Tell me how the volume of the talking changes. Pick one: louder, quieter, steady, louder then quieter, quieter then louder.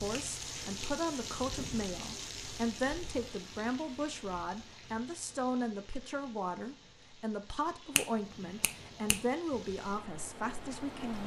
steady.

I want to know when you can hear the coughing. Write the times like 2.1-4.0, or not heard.
not heard.